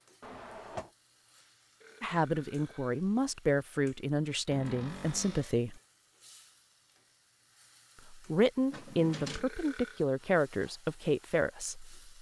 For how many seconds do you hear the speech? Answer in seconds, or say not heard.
8 s.